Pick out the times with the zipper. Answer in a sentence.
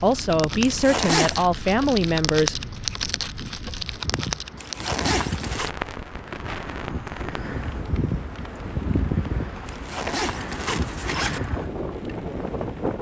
The zipper can be heard from 0.6 to 1.4 s, from 4.5 to 5.7 s and from 9.7 to 11.4 s.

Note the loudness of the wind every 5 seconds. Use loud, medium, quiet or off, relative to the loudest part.
medium, loud, loud.